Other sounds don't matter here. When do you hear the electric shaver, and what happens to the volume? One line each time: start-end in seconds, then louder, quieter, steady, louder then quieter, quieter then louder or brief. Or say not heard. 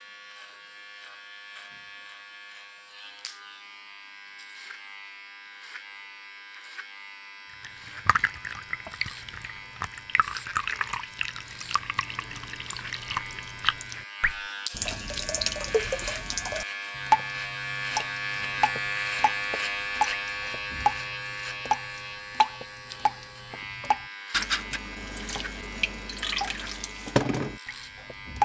0.0-28.4 louder then quieter.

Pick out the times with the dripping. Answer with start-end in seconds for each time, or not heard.
7.6-28.4.